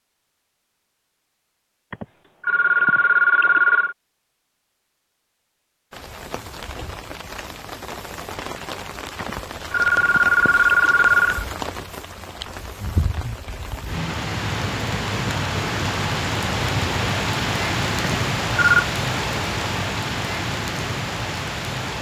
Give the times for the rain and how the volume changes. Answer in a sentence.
The rain can be heard from 5.9 to 21.9 s, getting louder.